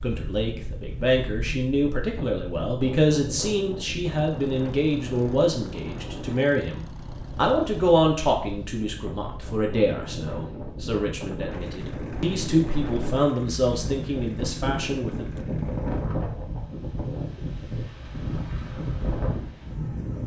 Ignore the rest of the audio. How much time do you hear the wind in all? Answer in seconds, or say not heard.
20 s.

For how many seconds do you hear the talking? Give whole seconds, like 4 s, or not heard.
15 s.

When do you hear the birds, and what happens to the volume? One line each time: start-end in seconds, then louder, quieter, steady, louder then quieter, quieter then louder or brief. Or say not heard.
not heard.